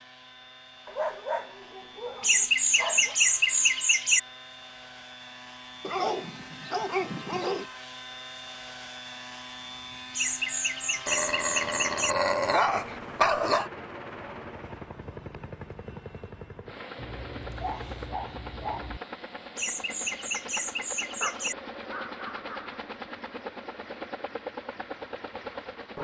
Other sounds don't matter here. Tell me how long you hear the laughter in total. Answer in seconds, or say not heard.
6 s.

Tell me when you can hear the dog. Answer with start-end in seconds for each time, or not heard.
0.8-3.1, 5.8-7.7, 11.1-13.7, 16.9-19.0, 21.2-22.9.